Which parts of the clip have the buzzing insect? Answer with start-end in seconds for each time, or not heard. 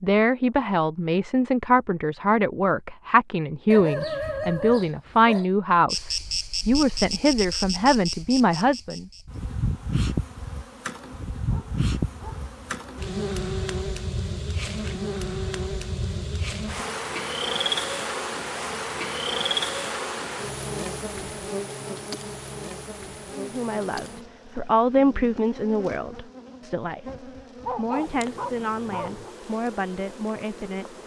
5.8-31.0.